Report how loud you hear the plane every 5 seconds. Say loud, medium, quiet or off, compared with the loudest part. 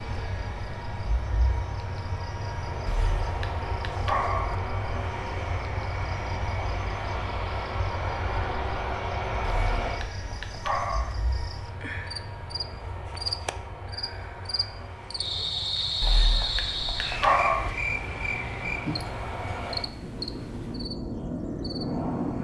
loud, loud, medium, medium, loud.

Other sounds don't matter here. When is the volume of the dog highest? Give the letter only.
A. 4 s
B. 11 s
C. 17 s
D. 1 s
C.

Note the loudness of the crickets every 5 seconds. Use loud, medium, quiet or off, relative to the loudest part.
quiet, quiet, medium, loud, medium.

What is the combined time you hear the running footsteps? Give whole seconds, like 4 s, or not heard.
not heard.